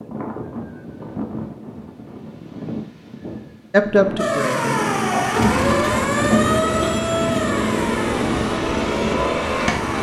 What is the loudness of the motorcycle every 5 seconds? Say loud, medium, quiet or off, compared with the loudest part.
off, loud.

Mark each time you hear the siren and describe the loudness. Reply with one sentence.
You can hear the siren from 4.2 to 9.9 s, getting quieter.